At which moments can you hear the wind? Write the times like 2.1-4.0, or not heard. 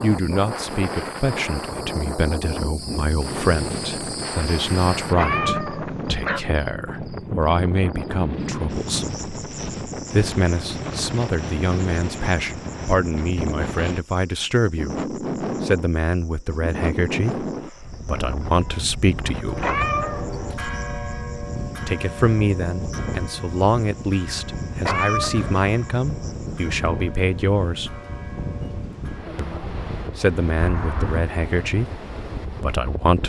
0.0-33.2.